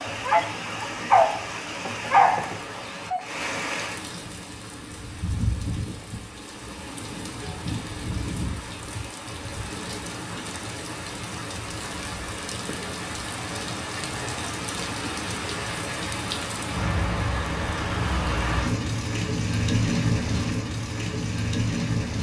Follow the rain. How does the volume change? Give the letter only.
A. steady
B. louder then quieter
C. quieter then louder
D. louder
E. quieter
D.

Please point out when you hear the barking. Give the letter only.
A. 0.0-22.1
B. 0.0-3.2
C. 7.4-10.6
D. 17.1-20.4
B.